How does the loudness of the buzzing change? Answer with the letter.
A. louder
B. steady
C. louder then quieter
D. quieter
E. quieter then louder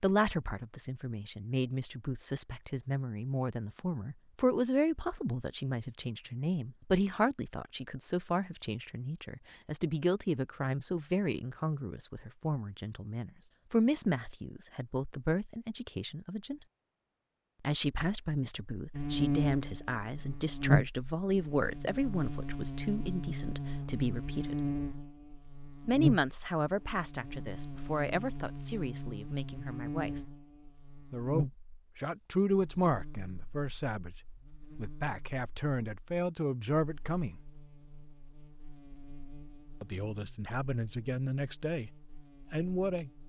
D.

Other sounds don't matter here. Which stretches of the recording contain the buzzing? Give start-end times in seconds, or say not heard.
18.9-43.2.